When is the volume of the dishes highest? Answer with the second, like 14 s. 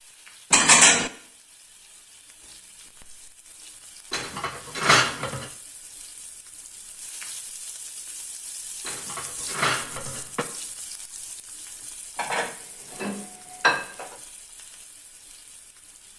1 s.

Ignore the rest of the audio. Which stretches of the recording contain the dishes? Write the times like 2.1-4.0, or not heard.
0.5-1.1, 4.1-5.5, 8.8-10.4, 12.2-14.2.